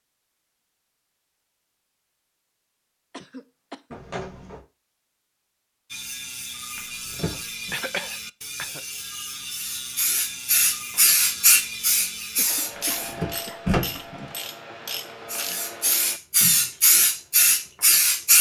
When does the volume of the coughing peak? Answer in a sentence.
The volume of the coughing peaks at 8 seconds.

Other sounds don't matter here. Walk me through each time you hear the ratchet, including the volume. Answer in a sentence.
The ratchet can be heard from 5.9 to 16.7 s, at a steady volume.